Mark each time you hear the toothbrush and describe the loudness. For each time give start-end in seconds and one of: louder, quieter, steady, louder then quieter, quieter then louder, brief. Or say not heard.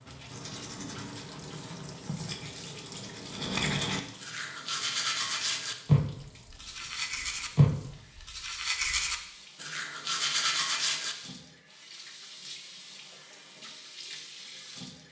0.3-11.2 louder.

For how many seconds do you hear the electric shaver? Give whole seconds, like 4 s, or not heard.
not heard.